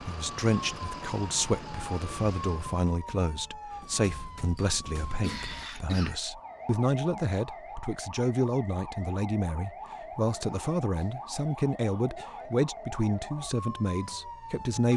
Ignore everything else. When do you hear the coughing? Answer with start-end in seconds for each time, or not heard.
4.5-6.2.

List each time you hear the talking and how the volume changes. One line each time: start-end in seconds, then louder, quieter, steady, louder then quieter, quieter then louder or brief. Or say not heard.
0.0-14.9 steady.